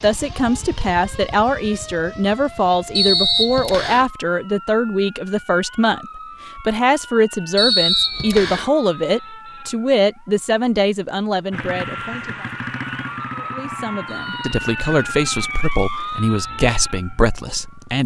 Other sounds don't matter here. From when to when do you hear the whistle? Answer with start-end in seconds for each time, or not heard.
3.0-4.0, 7.5-8.7, 14.1-15.2.